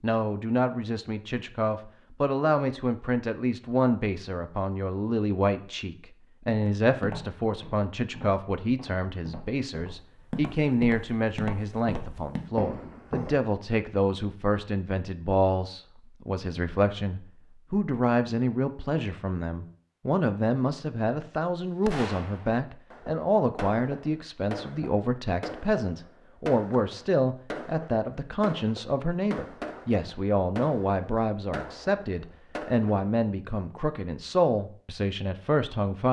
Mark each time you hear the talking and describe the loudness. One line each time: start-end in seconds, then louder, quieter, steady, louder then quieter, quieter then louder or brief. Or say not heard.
0.0-36.0 steady.